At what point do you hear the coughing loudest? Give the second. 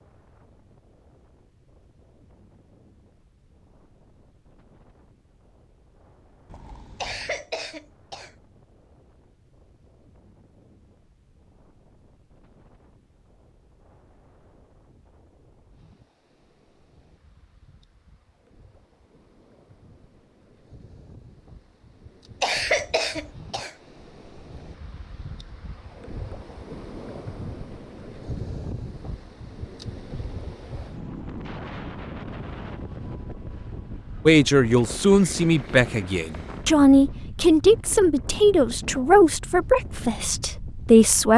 23 s.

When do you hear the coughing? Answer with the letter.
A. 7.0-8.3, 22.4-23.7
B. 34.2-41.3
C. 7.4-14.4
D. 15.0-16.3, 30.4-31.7
A.